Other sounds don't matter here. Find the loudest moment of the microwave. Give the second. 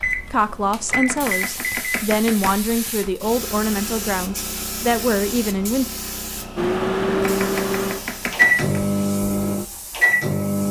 9 s.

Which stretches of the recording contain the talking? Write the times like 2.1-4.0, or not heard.
0.2-5.8.